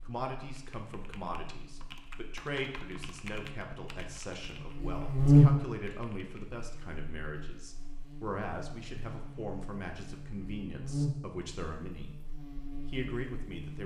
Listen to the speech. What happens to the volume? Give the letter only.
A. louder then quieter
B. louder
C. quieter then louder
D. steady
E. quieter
D.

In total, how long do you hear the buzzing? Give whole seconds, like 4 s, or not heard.
14 s.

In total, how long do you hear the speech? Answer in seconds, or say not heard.
14 s.